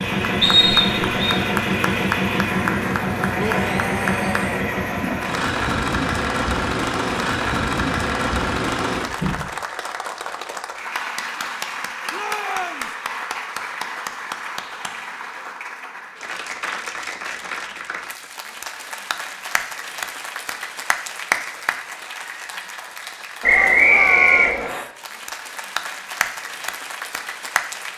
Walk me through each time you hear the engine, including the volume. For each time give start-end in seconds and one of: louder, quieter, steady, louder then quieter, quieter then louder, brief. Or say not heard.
0.0-9.5 steady.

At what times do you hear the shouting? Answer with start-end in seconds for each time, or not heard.
3.4-4.5, 12.1-12.9, 23.5-24.9.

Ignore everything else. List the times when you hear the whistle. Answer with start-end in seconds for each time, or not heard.
0.4-1.4, 23.4-24.9.